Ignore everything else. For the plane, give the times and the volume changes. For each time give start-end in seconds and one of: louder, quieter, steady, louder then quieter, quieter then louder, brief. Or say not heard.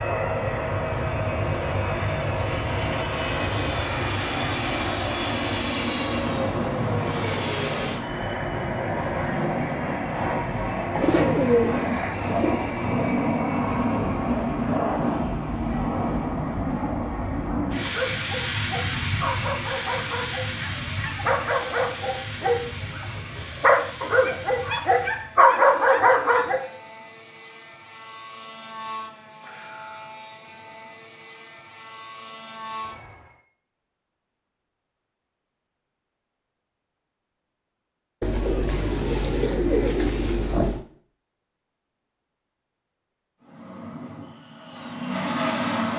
0.0-33.4 quieter
43.4-45.9 brief.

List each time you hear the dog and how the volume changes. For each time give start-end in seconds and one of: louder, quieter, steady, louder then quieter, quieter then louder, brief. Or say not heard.
17.8-26.6 louder.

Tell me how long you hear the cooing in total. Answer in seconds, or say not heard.
4 s.